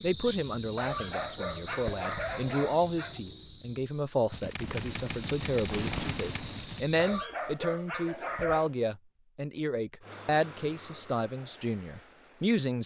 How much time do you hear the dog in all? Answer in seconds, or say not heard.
4 s.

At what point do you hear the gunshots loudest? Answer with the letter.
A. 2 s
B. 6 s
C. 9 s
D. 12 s
B.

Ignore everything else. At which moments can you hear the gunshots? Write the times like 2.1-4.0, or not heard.
4.3-6.8.